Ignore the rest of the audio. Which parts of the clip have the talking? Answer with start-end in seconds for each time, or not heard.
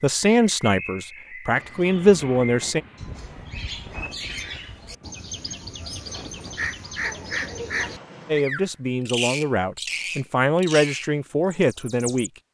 0.0-2.8, 8.2-12.3.